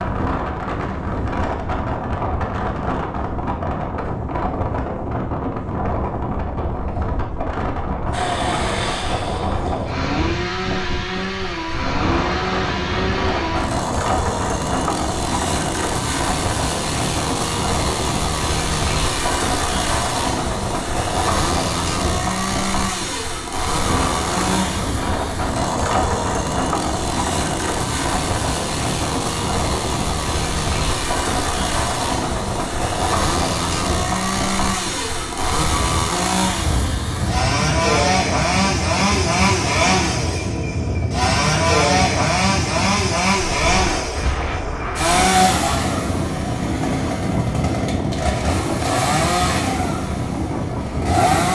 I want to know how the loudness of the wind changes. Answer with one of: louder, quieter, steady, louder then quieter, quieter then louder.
steady.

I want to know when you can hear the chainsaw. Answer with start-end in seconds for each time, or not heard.
8.1-51.5.